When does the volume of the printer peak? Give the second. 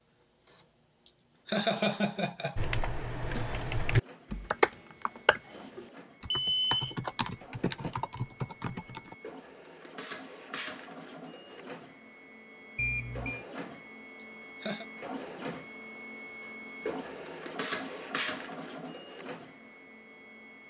18 s.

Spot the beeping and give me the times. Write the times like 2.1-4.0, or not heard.
6.3-7.0, 12.8-13.4.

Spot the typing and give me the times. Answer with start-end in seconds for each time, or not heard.
2.5-9.2.